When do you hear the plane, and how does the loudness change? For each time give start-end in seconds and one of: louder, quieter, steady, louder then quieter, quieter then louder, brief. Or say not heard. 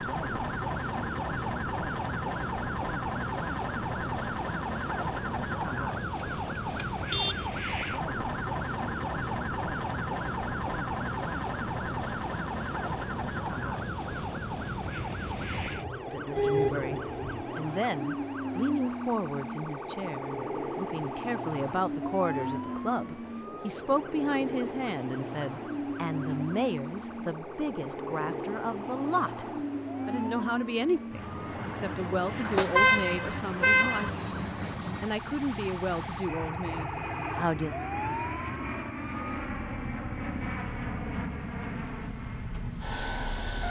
0.0-43.6 steady.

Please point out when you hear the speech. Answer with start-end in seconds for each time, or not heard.
16.1-29.4, 30.1-34.1, 35.0-37.8.